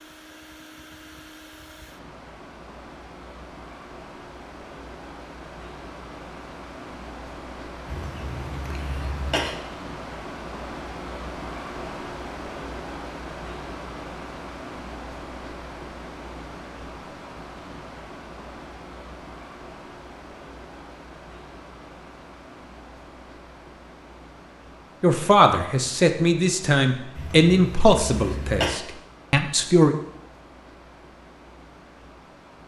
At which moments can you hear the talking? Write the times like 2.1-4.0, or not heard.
25.0-29.9.